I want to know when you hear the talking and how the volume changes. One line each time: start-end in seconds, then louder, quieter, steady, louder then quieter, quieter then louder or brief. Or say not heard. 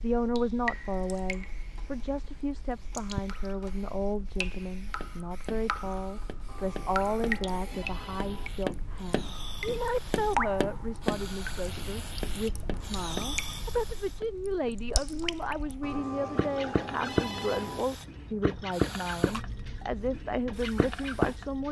0.0-21.6 steady.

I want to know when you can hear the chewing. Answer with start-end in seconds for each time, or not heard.
not heard.